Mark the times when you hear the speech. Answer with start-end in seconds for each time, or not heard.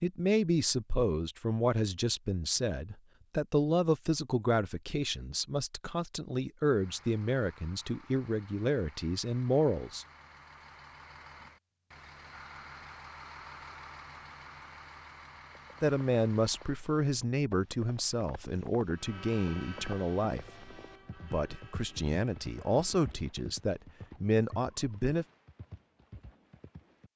0.0-10.1, 15.8-25.2.